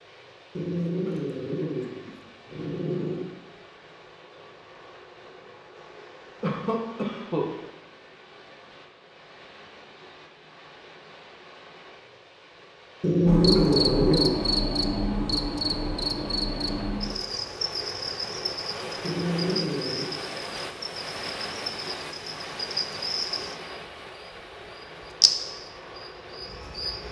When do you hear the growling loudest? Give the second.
13 s.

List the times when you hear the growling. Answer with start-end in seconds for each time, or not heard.
0.6-3.3, 13.0-14.3, 19.0-20.1.